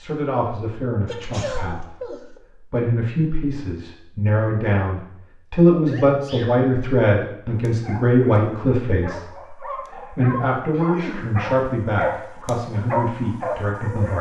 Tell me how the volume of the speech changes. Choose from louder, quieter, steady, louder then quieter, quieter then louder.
louder then quieter.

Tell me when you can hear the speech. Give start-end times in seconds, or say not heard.
0.0-14.1.